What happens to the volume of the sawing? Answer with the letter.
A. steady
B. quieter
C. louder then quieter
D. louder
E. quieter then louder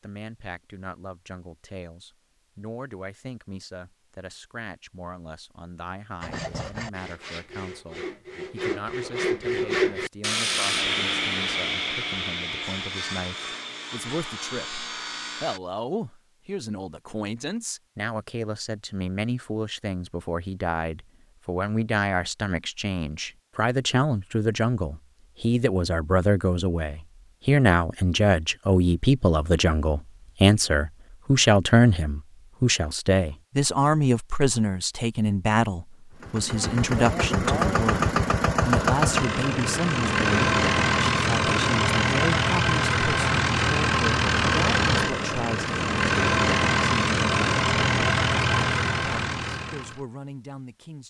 C.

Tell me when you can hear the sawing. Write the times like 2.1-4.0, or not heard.
6.2-15.6.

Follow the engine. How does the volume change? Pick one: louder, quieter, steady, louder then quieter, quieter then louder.
steady.